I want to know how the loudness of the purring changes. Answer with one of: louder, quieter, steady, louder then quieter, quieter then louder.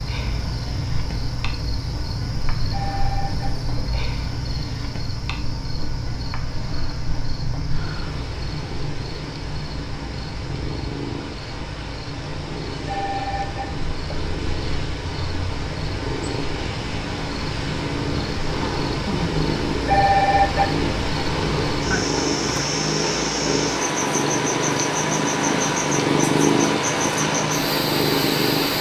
louder.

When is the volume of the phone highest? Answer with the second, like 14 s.
20 s.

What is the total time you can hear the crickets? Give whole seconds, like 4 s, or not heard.
29 s.